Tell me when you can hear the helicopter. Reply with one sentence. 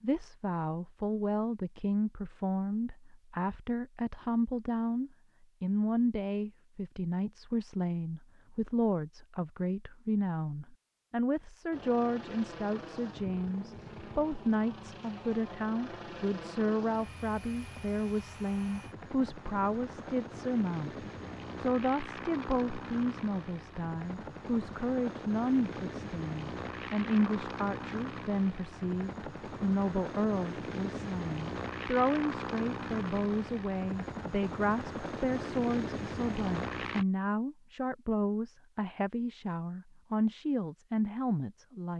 The helicopter can be heard from 11.7 to 37.0 s.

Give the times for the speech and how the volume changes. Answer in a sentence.
The speech can be heard from 0.0 to 41.9 s, at a steady volume.